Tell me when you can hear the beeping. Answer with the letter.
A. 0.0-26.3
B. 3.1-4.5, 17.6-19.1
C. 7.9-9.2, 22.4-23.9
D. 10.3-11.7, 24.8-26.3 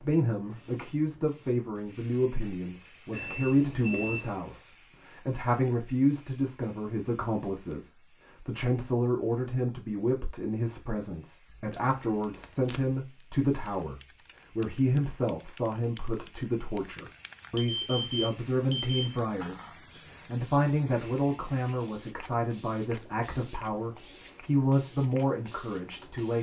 B.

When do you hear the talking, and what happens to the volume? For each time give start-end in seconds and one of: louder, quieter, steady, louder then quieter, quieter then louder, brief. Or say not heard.
0.0-26.3 steady.